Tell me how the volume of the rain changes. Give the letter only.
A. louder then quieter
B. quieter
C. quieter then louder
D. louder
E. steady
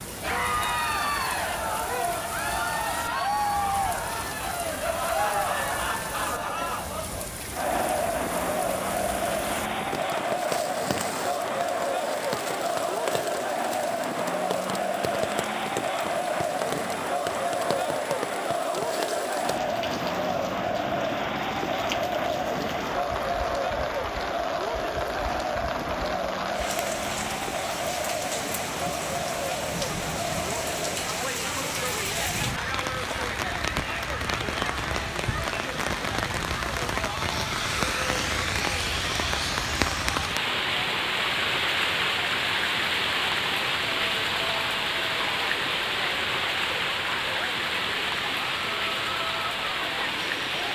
D.